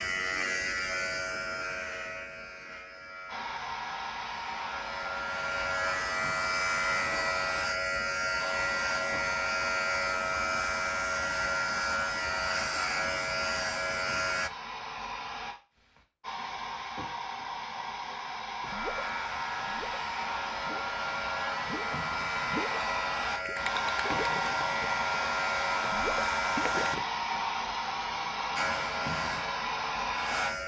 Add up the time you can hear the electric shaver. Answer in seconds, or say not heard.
25 s.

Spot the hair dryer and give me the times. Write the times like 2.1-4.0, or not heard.
3.2-30.6.